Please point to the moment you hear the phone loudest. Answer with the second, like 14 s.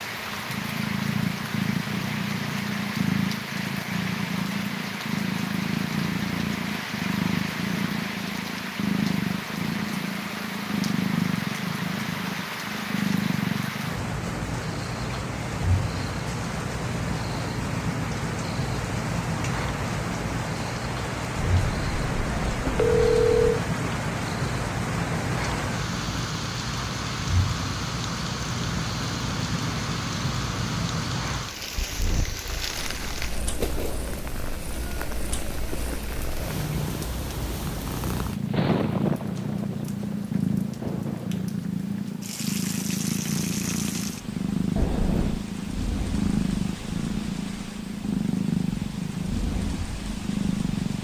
23 s.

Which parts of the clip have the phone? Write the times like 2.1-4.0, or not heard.
21.4-23.6, 44.8-45.5.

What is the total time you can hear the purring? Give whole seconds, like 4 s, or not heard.
51 s.